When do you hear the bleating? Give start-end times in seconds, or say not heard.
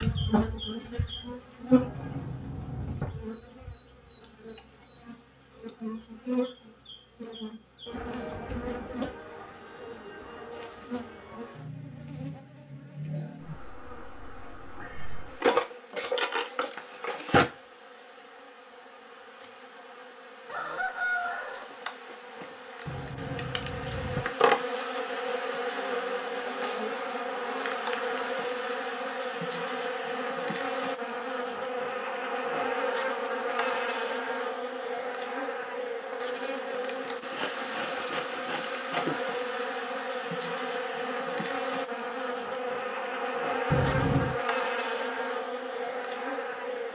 not heard.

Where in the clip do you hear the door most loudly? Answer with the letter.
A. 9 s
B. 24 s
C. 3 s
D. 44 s
D.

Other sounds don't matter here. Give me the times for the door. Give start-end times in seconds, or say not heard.
1.7-3.1, 22.9-24.2, 43.7-44.4.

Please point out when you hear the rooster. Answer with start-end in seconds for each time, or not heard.
20.4-21.6.